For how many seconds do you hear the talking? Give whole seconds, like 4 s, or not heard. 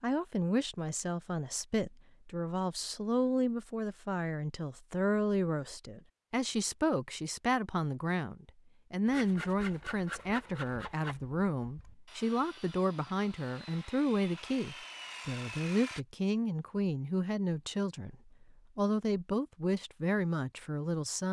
21 s.